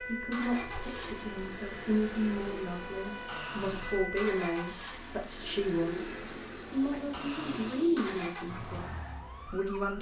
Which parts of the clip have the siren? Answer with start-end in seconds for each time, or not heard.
0.0-4.8, 8.4-9.9.